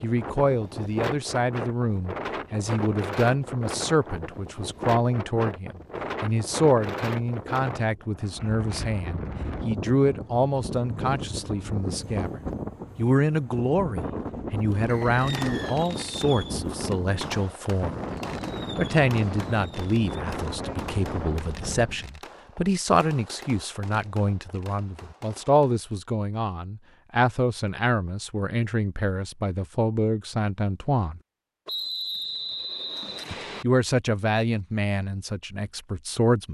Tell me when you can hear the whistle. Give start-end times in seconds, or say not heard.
14.8-15.8, 31.6-33.6.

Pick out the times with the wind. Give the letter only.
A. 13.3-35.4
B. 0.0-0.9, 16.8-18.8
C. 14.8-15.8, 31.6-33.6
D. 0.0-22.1
D.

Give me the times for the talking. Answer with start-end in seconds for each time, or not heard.
0.0-17.9, 18.8-31.2, 33.3-36.4.